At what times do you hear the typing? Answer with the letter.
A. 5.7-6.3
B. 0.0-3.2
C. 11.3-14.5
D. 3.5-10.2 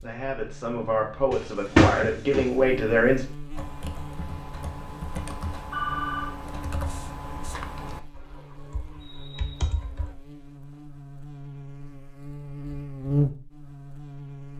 D.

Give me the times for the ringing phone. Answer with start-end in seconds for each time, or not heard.
5.7-6.3.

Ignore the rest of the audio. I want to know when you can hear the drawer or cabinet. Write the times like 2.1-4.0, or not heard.
1.3-2.6.